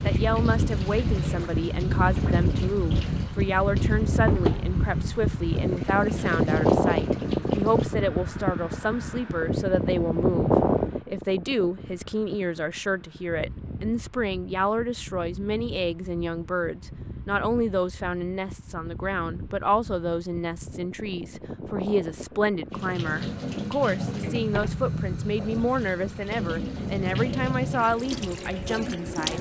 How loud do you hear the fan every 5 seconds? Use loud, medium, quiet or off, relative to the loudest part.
loud, loud, loud, quiet, quiet, quiet.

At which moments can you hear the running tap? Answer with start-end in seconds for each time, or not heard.
0.0-7.9, 22.7-29.3.